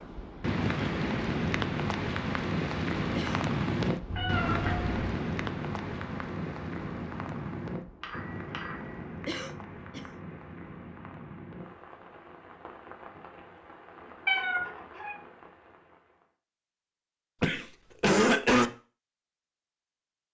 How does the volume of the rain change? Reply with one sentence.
The loudness of the rain goes down.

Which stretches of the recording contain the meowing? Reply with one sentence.
The meowing can be heard from 4.0 to 5.1 s, from 8.0 to 9.0 s and from 14.2 to 15.2 s.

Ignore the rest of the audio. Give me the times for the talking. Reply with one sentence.
You can't hear the talking here.